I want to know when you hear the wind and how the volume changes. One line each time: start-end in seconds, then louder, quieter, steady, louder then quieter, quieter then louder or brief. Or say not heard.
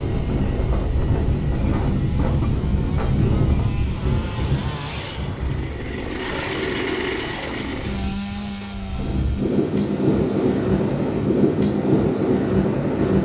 0.0-13.1 quieter then louder.